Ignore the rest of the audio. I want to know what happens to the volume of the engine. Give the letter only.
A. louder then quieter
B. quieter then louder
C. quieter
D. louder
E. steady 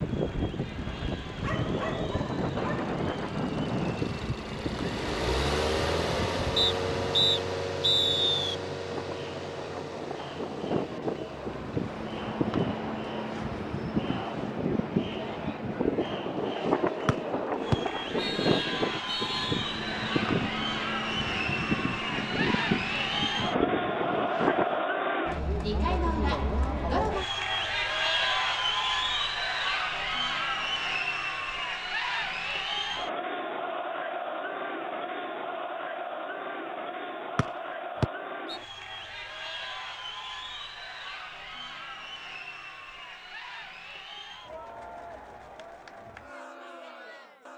A.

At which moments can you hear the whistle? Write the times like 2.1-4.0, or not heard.
6.5-8.6, 17.1-19.5, 37.4-38.5.